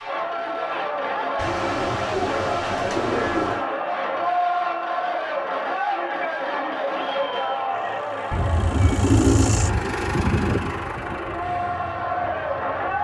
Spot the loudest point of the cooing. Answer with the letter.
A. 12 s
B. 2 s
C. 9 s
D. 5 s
C.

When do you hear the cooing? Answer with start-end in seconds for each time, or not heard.
1.4-3.6, 8.3-9.9.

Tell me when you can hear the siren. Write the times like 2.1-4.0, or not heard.
not heard.